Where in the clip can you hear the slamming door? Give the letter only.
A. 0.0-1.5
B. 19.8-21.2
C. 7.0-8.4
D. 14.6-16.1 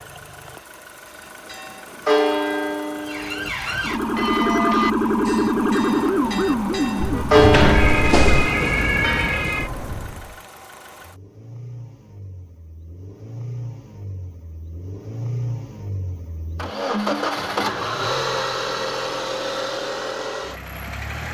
C.